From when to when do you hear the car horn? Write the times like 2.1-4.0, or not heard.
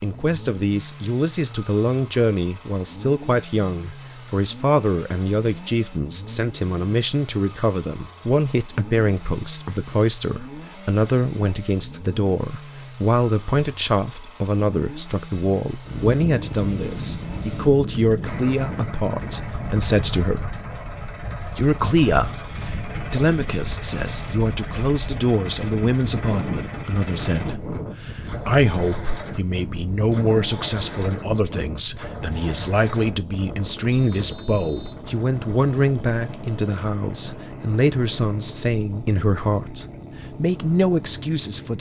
not heard.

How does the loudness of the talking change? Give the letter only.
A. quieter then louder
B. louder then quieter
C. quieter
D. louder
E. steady
E.